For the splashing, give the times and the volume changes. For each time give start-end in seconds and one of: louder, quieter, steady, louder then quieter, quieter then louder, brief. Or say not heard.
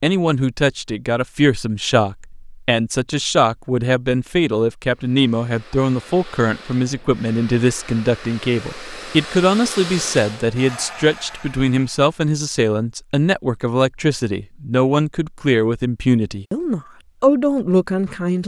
not heard.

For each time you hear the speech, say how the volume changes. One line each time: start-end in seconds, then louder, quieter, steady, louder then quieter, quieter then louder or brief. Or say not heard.
0.0-18.4 steady.